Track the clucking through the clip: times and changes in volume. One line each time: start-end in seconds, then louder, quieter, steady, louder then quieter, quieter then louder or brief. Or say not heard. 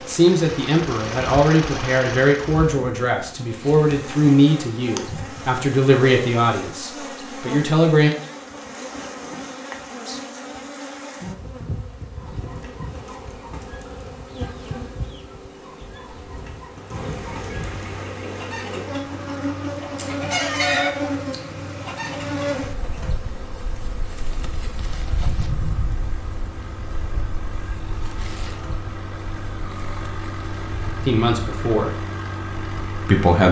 12.2-22.6 louder.